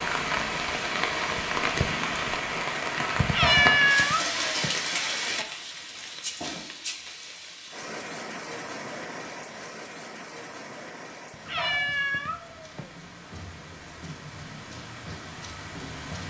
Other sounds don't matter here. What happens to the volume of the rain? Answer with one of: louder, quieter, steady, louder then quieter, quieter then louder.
quieter.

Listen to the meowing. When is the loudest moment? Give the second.
4 s.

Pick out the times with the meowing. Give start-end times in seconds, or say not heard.
3.1-4.8, 11.3-12.9.